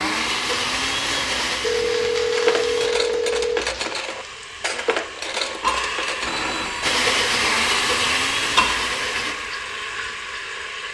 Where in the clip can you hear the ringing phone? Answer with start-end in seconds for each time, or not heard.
1.6-3.6, 6.2-7.0.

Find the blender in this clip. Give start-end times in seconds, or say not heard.
0.0-2.9, 6.8-9.3.